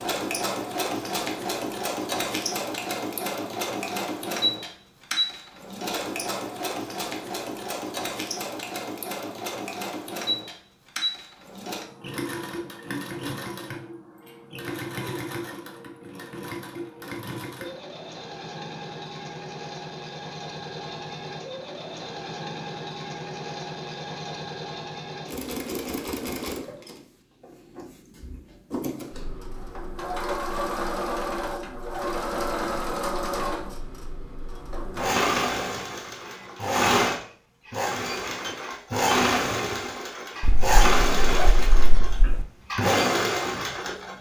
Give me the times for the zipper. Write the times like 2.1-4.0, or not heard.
40.4-42.5.